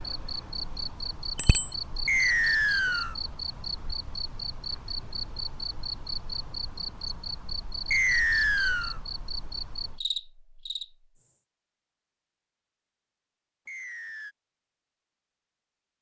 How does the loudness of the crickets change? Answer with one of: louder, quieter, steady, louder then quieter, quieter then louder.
steady.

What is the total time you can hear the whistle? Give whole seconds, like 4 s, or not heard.
3 s.